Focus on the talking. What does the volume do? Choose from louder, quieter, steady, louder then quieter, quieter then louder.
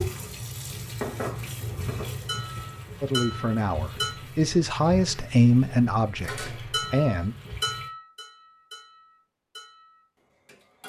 louder then quieter.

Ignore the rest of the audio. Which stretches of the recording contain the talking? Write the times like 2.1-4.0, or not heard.
3.0-7.3.